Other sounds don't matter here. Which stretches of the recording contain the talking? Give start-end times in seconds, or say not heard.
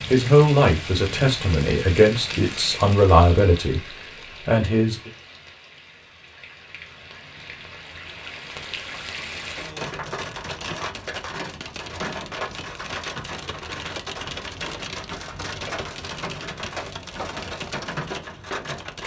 0.0-5.1.